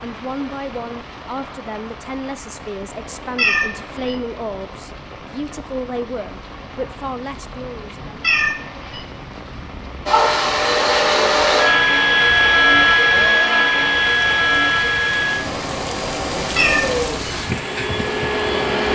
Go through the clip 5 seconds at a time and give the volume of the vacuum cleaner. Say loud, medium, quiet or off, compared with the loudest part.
off, off, loud, medium.